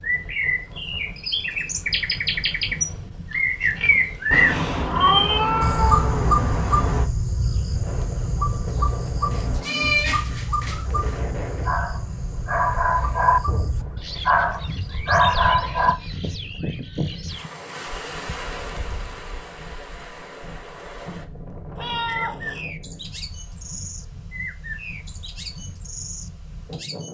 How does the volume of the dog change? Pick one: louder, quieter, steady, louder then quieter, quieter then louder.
louder.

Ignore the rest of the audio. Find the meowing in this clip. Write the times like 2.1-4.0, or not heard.
4.3-7.1, 9.3-11.2, 21.8-22.6.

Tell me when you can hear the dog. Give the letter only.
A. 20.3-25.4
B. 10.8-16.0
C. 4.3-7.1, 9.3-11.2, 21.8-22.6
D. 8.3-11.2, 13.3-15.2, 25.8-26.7
B.